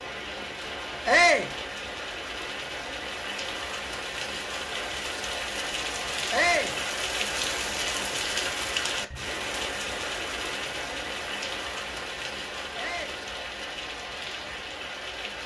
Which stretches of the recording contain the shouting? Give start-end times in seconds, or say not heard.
1.1-1.5, 6.3-6.8, 12.8-13.2.